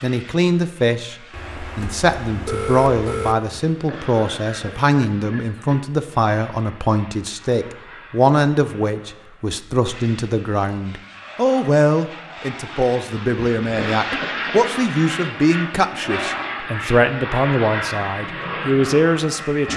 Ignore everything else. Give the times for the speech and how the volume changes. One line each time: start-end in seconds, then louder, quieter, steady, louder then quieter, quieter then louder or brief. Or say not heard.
0.0-1.1 brief
1.8-19.7 steady.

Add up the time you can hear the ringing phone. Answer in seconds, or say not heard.
2 s.